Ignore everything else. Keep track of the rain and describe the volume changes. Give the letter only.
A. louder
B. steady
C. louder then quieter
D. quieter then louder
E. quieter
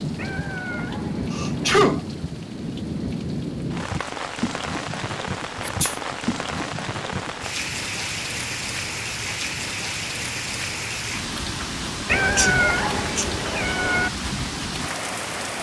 B.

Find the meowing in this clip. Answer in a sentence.
You can hear the meowing from 0.1 to 1.9 s and from 12.1 to 14.1 s.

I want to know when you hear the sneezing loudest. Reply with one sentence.
The loudest moment of the sneezing is at 2 seconds.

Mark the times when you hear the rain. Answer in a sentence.
You can hear the rain from 0.0 to 15.5 s.